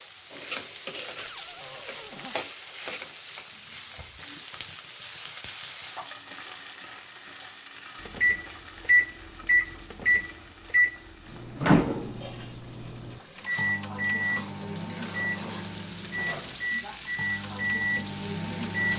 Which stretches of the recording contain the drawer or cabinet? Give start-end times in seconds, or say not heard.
1.1-2.4.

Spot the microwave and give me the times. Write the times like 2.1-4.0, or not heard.
8.1-18.9.